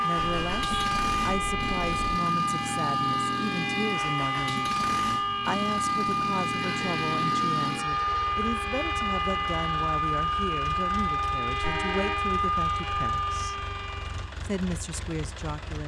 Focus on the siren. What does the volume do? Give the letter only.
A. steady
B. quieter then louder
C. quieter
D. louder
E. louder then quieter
A.